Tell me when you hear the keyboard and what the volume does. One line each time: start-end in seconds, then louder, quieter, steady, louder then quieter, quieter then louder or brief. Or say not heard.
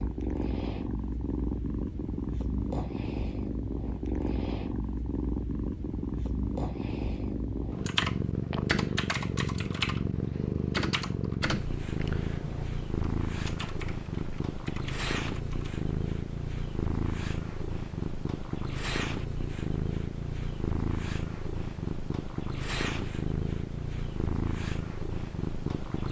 7.8-15.8 quieter.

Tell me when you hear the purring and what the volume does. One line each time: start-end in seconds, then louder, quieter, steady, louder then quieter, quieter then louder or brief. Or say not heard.
0.0-26.0 steady.